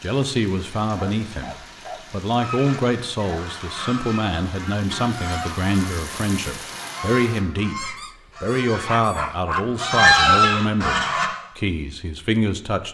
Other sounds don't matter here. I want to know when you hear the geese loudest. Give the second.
10 s.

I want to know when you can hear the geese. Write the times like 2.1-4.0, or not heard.
2.4-11.3.